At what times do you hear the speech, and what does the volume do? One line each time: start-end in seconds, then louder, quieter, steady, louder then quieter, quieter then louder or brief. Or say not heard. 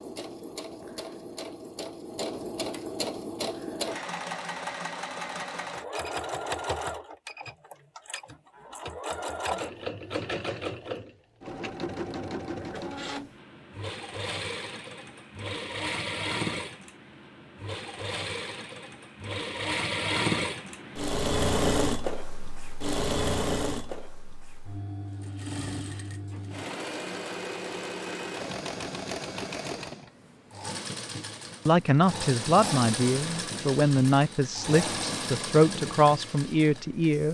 31.6-37.2 steady.